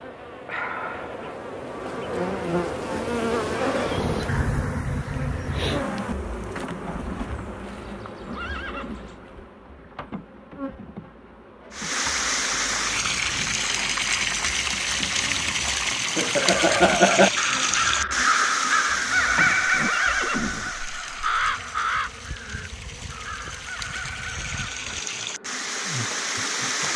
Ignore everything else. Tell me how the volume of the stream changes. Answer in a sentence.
The loudness of the stream goes down, then up.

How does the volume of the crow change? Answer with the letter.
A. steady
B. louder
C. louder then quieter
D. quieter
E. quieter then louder
D.